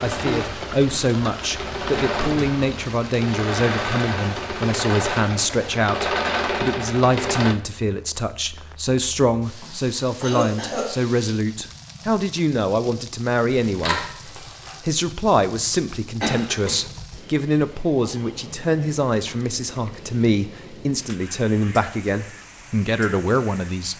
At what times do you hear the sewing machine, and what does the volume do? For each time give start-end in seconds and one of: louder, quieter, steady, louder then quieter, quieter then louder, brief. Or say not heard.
0.0-7.6 louder.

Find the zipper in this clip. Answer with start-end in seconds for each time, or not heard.
13.7-14.8.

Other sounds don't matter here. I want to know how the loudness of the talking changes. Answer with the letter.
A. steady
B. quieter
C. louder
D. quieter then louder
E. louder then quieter
A.